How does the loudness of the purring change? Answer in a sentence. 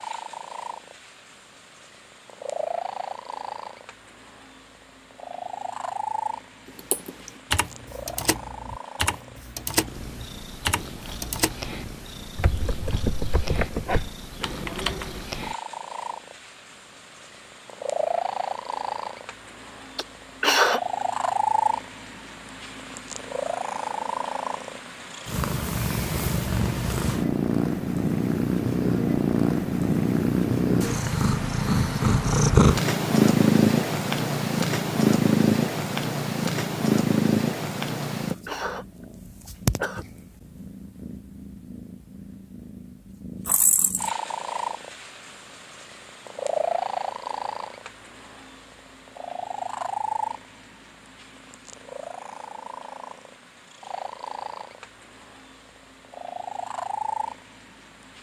The loudness of the purring goes up, then down.